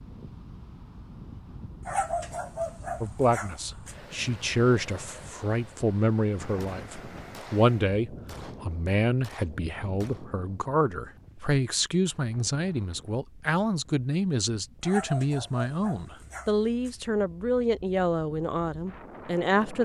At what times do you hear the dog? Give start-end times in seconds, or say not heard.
1.9-4.0, 14.8-16.9.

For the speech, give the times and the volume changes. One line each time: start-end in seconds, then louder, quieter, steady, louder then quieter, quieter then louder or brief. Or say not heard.
3.0-19.7 steady.